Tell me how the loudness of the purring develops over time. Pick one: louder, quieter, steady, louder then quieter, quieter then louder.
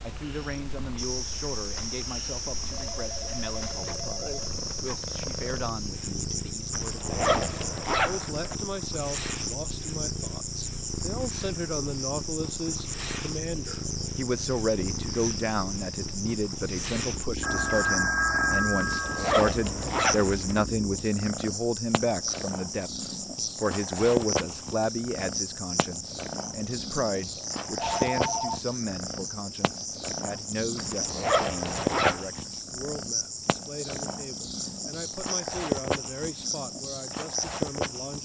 louder.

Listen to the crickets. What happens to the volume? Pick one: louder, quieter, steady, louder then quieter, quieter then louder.
steady.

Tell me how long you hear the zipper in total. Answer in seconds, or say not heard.
5 s.